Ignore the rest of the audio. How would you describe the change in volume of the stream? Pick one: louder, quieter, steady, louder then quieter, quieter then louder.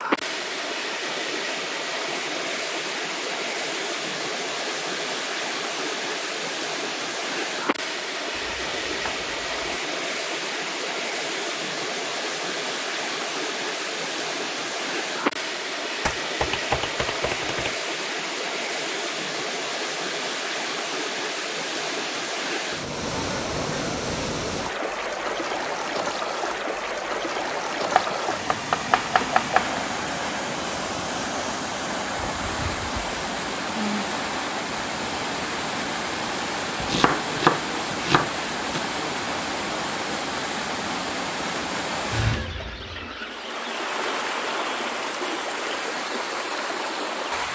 steady.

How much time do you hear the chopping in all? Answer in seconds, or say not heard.
7 s.